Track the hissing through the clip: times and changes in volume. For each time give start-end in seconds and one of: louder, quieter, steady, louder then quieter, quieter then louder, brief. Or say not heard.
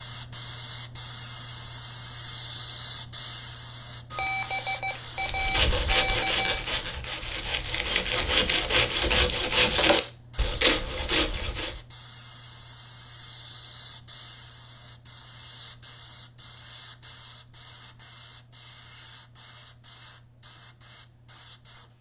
0.0-21.9 quieter.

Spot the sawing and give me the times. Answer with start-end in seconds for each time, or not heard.
5.2-11.8.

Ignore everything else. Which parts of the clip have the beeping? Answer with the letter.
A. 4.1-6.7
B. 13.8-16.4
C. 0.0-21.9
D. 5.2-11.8
A.